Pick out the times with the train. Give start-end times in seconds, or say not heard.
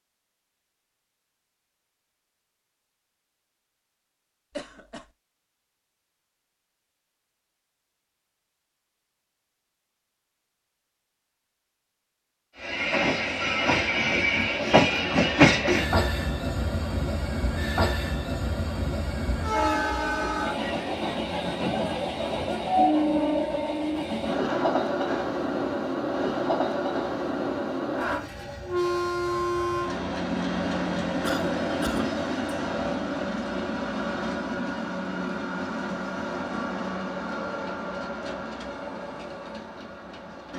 12.6-40.5.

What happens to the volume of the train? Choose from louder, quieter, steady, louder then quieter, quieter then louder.
quieter.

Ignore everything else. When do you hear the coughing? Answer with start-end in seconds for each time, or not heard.
4.5-5.1, 24.4-25.4, 31.2-32.2.